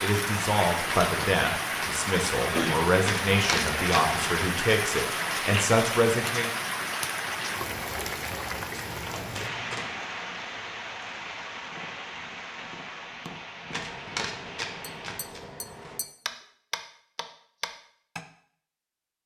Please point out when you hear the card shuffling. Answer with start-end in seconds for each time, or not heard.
3.0-4.5, 8.7-9.9, 13.7-16.1.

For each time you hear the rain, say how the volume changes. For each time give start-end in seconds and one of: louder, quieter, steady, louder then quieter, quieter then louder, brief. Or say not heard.
0.0-15.2 quieter.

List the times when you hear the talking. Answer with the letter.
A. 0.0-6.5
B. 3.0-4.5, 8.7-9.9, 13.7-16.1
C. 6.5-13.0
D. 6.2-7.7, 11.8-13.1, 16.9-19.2
A.